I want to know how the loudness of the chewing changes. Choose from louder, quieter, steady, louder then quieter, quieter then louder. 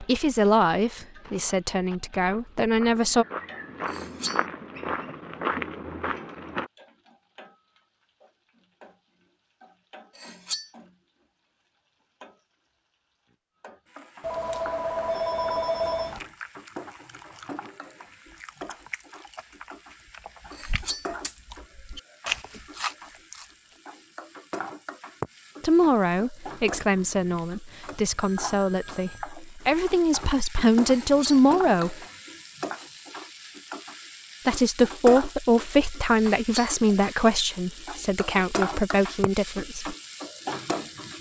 louder.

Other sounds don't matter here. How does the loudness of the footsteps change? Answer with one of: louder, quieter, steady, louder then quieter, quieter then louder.
louder.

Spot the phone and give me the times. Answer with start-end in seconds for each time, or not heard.
14.2-16.2, 27.6-29.4.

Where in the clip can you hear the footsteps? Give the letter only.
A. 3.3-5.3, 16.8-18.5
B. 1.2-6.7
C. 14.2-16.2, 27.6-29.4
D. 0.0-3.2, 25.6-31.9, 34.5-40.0
B.